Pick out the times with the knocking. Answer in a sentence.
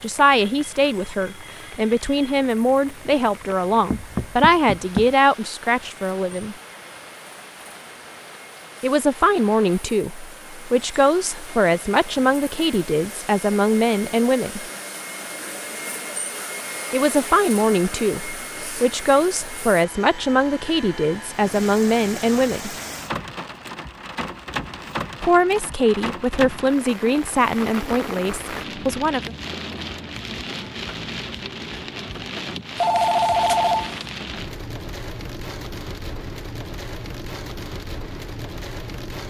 You can hear the knocking from 3.9 to 5.2 s.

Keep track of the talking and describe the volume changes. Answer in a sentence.
The volume of the talking stays about the same.